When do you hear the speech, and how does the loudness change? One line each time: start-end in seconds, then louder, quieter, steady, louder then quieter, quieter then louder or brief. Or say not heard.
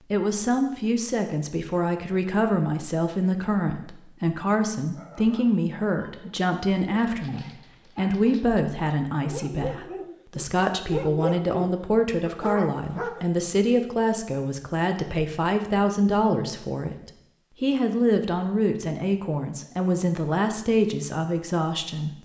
0.0-22.2 steady.